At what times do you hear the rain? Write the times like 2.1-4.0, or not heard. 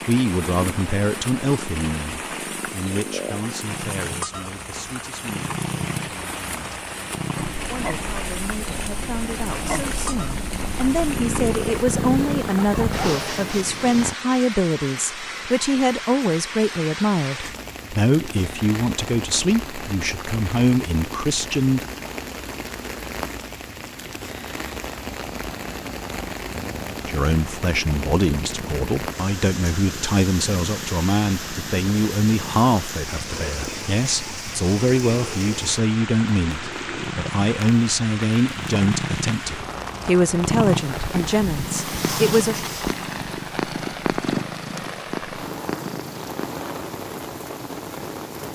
0.0-48.5.